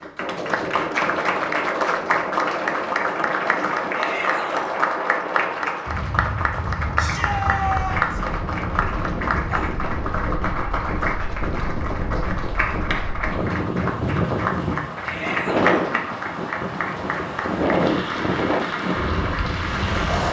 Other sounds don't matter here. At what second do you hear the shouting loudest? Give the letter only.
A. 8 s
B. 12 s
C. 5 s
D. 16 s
A.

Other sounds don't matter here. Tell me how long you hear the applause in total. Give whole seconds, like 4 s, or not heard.
20 s.